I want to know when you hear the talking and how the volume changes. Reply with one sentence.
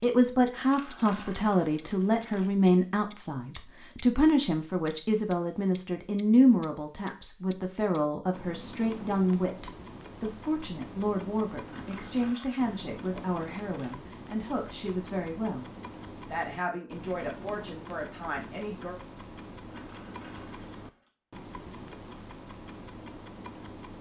The talking can be heard from 0.0 to 19.0 s, getting quieter.